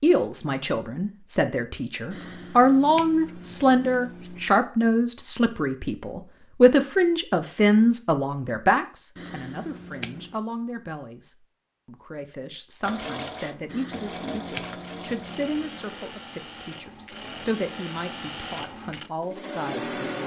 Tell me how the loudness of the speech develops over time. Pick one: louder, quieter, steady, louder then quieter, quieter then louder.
quieter.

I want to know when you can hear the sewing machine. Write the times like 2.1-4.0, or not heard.
12.8-20.2.